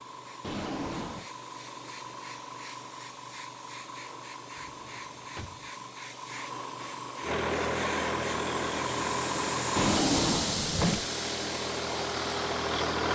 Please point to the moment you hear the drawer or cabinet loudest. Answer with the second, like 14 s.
10 s.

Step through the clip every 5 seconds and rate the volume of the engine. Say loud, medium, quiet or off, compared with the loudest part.
off, loud, loud.